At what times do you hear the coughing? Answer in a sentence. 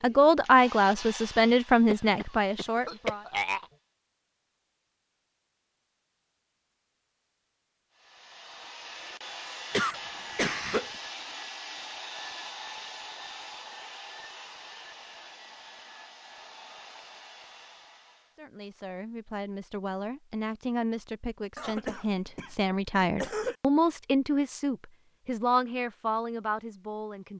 The coughing can be heard from 1.9 to 3.6 s, from 9.7 to 10.9 s and from 21.6 to 23.6 s.